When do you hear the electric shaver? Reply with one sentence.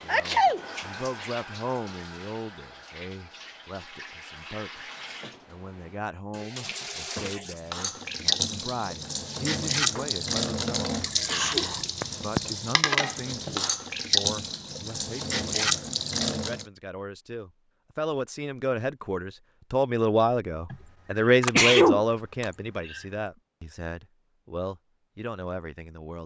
You can't hear the electric shaver here.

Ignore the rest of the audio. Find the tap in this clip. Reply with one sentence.
You can hear the tap from 0.0 to 16.6 s.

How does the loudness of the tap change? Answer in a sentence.
The loudness of the tap goes up.